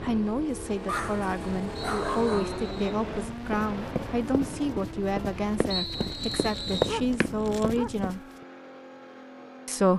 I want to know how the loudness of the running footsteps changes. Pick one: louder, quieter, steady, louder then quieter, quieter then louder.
louder then quieter.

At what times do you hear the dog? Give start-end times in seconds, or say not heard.
0.8-2.5, 6.0-7.9.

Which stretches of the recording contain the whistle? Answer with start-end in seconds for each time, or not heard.
1.8-3.0, 5.7-7.0.